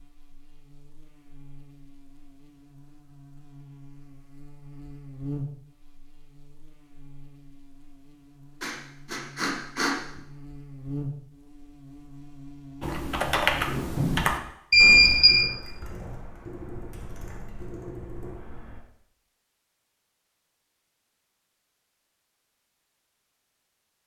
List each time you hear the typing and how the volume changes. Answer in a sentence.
You can hear the typing from 12.8 to 18.8 s, getting quieter.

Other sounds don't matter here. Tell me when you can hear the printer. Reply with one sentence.
You can't hear the printer here.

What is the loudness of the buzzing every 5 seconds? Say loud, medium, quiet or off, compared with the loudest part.
medium, loud, loud, off, off.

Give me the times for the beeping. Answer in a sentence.
You can hear the beeping from 14.7 to 15.4 s.